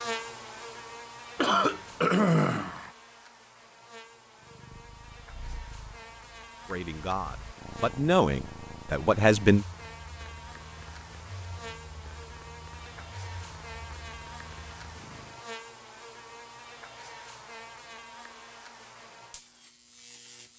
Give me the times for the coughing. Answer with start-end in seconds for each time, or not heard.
1.4-2.9.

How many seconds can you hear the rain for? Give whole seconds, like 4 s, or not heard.
not heard.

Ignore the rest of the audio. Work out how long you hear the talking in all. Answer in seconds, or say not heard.
3 s.